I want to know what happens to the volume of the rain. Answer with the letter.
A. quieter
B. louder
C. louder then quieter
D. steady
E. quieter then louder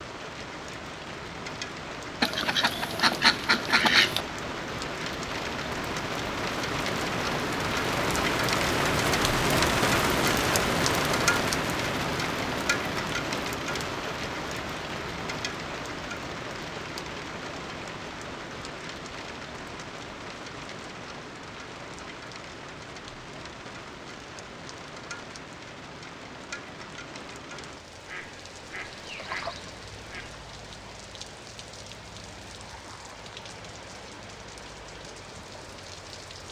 C.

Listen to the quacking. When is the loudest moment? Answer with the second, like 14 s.
4 s.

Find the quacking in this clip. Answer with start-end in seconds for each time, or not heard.
2.2-4.2, 28.1-30.4.